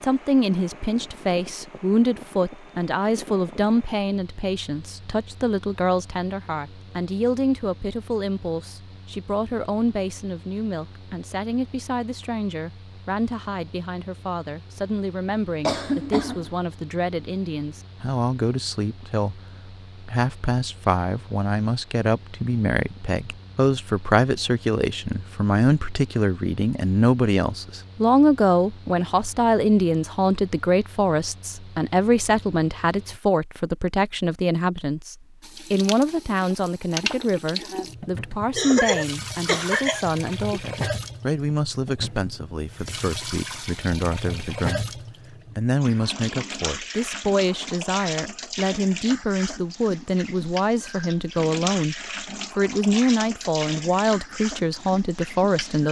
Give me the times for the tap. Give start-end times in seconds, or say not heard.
35.4-55.8.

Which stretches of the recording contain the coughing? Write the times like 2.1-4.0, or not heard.
15.7-16.5, 38.5-40.6.